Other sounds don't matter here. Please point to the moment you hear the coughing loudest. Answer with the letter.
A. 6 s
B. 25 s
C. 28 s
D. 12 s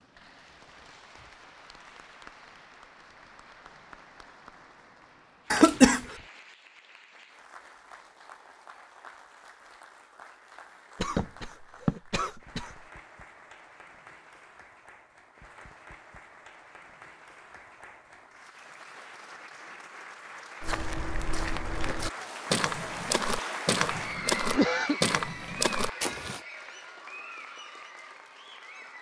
A.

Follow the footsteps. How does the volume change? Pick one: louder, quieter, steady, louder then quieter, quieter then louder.
louder.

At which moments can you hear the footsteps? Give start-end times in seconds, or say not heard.
20.6-26.4.